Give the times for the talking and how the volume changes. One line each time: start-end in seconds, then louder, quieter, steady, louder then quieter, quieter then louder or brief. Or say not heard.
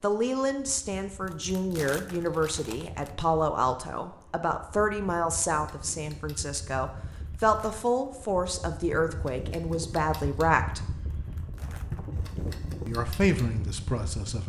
0.0-10.9 steady
12.8-14.4 brief.